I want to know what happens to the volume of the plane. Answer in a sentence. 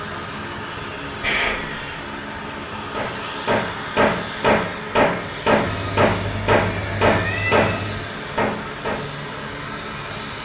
The loudness of the plane stays about the same.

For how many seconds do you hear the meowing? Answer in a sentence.
You can hear the meowing for 3 seconds altogether.